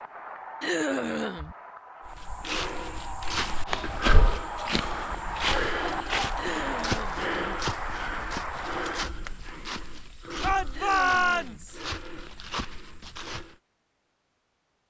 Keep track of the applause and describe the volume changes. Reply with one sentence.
The volume of the applause goes up.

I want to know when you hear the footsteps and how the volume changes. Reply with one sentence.
The footsteps can be heard from 2.0 to 13.6 s, getting quieter.